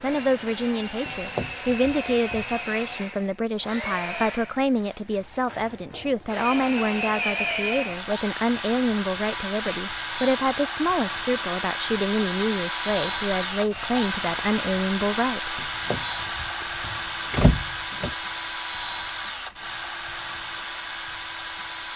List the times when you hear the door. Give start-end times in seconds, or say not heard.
1.1-2.5, 15.6-18.1.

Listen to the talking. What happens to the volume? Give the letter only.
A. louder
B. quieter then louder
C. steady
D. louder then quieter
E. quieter
C.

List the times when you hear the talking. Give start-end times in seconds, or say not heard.
0.0-15.6.